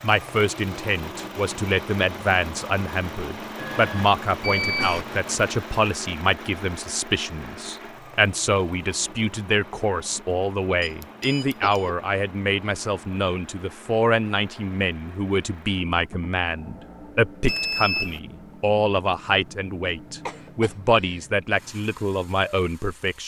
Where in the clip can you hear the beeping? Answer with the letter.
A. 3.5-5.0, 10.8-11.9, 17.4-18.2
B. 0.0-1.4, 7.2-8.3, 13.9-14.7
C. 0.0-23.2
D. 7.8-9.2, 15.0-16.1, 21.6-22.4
A.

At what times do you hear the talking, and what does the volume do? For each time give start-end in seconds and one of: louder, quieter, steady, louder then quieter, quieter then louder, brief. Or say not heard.
0.0-23.2 steady.